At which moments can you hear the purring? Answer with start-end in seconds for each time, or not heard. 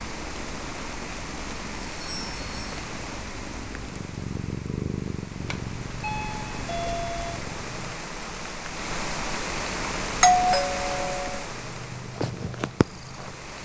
0.0-8.0, 9.8-13.5.